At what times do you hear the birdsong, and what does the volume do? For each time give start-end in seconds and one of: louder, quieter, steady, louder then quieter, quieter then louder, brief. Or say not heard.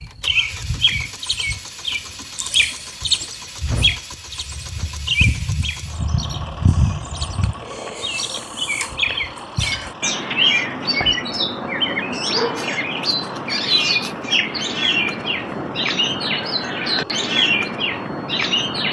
0.0-18.8 steady.